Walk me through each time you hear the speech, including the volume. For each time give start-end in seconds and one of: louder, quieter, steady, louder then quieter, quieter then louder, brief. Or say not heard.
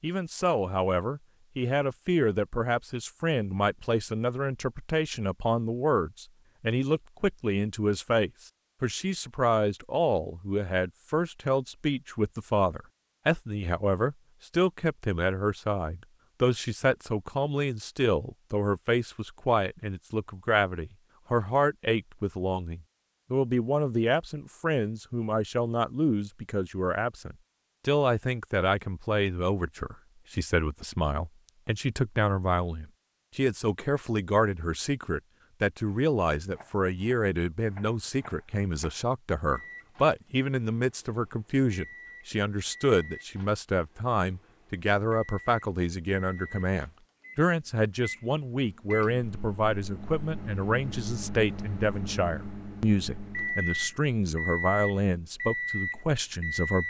0.0-56.8 steady.